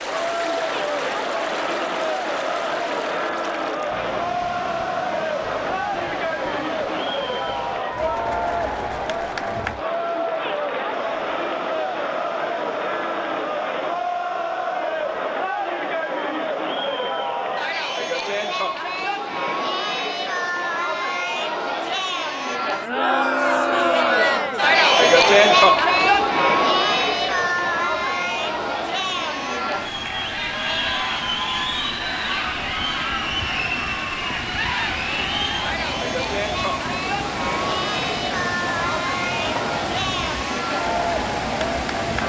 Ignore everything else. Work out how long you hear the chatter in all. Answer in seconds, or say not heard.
42 s.